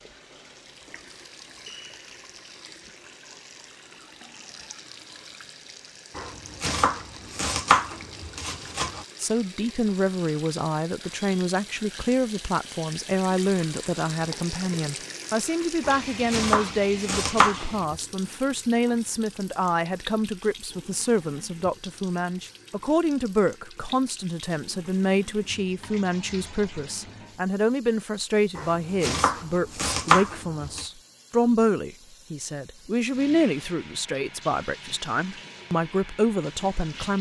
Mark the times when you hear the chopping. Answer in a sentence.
The chopping can be heard from 6.2 to 9.1 s, from 15.8 to 18.0 s and from 28.6 to 30.9 s.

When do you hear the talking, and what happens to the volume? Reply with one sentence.
You can hear the talking from 9.2 to 37.1 s, at a steady volume.